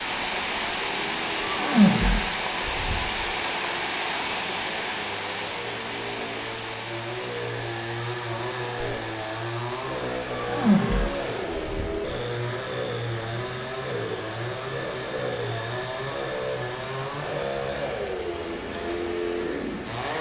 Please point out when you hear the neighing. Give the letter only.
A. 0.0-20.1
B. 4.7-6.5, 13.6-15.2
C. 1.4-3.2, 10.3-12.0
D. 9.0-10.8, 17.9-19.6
C.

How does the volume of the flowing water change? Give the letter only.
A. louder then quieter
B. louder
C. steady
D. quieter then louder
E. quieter
E.